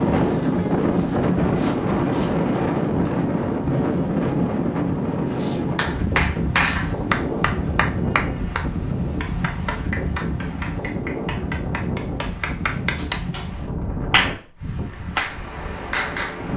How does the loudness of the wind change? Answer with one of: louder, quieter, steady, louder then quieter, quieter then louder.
quieter.